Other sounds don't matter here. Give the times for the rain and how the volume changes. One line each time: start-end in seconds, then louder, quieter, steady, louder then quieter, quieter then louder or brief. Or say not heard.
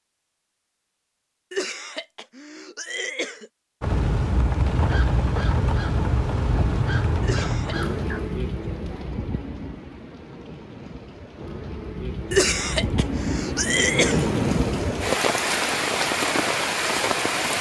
3.8-17.5 quieter then louder.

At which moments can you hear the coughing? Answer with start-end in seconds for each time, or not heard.
1.5-3.5, 7.2-7.8, 12.3-14.3.